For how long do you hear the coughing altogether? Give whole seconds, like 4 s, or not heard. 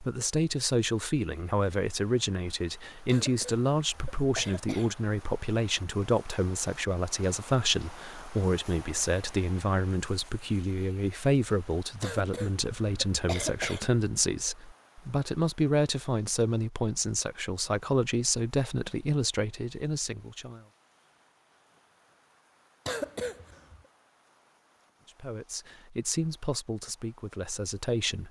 5 s.